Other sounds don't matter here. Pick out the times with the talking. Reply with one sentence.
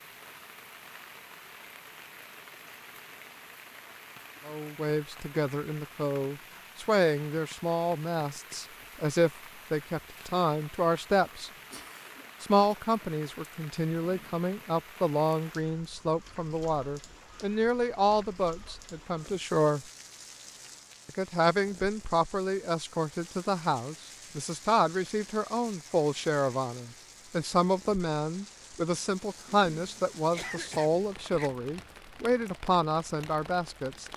The talking can be heard from 4.5 to 11.5 s, from 12.4 to 19.9 s and from 21.1 to 34.1 s.